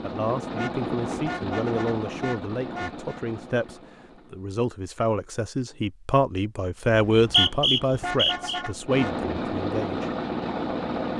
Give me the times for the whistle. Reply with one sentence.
The whistle can be heard from 6.9 to 8.6 s.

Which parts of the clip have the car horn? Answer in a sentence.
You can hear the car horn from 0.6 to 3.2 s and from 7.3 to 9.2 s.